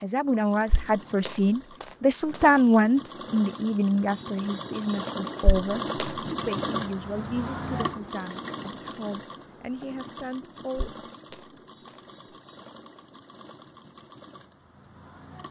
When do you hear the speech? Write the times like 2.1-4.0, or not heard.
0.0-11.0.